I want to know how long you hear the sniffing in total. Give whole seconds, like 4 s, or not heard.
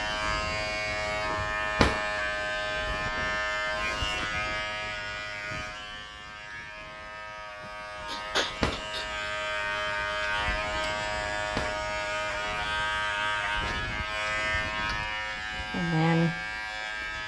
2 s.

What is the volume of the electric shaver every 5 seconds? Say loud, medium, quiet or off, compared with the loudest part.
loud, medium, loud, loud.